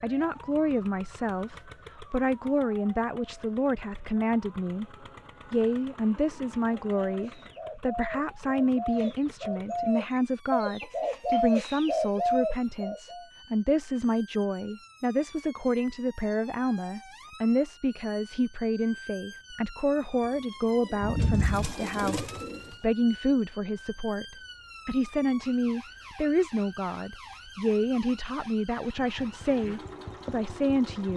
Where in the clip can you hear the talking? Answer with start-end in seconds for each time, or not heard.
0.0-4.8, 5.5-31.1.